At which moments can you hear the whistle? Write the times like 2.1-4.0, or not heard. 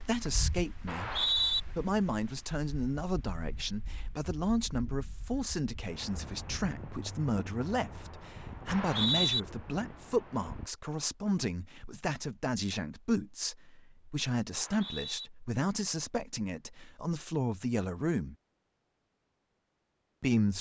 0.8-1.6, 8.7-9.4, 14.5-15.3.